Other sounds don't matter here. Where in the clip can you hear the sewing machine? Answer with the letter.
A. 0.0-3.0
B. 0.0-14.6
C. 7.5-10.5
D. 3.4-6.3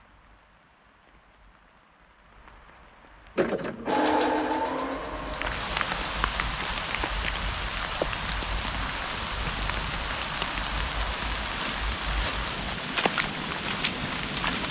D.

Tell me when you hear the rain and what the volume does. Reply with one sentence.
You can hear the rain from 0.0 to 14.6 s, getting louder.